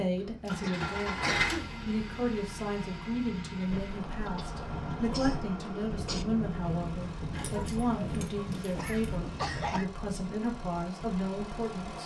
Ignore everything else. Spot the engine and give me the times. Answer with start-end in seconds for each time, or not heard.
0.0-12.0.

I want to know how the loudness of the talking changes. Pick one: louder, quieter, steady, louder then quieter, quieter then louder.
steady.